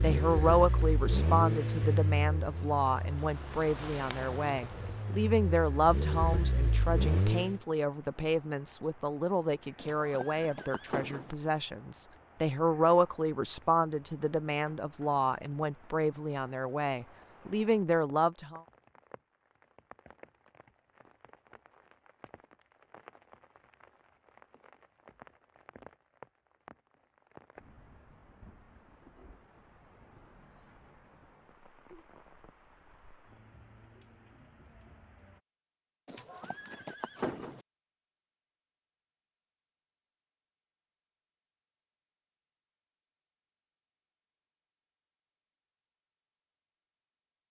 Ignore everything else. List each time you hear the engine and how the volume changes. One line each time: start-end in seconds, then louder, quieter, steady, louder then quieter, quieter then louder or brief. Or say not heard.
0.0-7.6 quieter then louder.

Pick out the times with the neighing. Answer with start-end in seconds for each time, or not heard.
9.8-11.3, 36.0-37.6.